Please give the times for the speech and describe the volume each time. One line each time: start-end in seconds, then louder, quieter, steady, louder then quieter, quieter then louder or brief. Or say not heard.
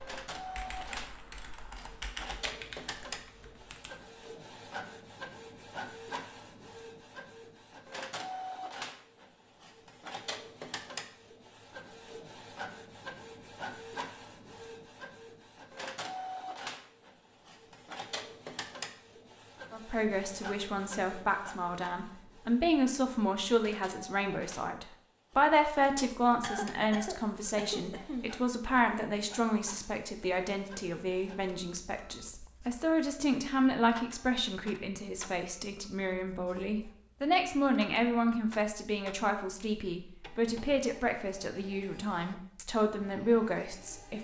19.7-44.2 steady.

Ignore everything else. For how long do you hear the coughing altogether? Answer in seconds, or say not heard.
2 s.